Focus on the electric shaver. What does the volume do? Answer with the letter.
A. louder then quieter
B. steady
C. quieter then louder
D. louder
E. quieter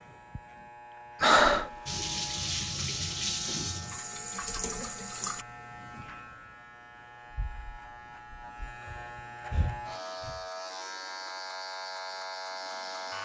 D.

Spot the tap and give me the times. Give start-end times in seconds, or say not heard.
1.9-5.5.